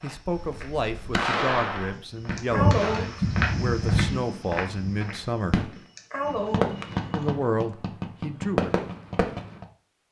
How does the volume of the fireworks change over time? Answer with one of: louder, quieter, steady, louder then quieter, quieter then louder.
quieter then louder.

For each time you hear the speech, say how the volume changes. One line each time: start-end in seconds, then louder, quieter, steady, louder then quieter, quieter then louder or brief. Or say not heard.
0.0-5.6 steady
7.1-8.8 brief.